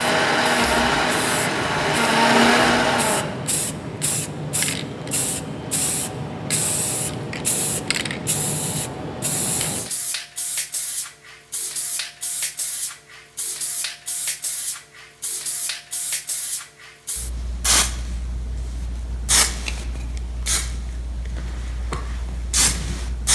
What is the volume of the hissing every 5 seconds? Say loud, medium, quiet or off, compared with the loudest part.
loud, loud, medium, loud, loud.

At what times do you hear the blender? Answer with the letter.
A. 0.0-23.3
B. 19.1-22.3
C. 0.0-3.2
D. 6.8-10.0
C.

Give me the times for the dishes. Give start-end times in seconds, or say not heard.
not heard.